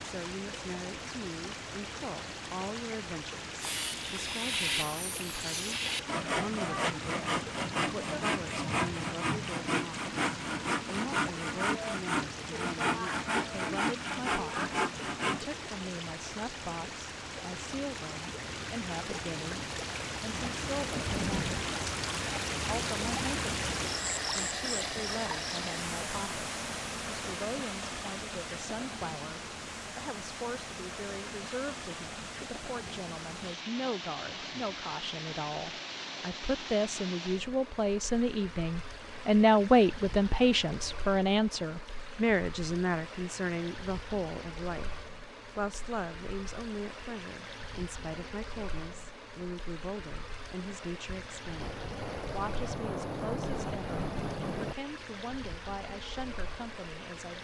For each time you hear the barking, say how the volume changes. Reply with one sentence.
The barking can't be heard in this clip.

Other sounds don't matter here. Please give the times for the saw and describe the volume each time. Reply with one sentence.
The saw can be heard from 3.6 to 15.4 s, at a steady volume.